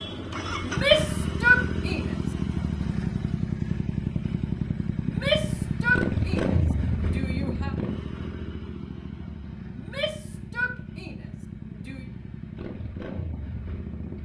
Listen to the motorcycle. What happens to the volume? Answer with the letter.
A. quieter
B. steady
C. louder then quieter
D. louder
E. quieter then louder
A.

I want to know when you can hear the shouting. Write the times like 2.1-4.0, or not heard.
0.6-2.1, 5.0-7.8, 9.8-12.1.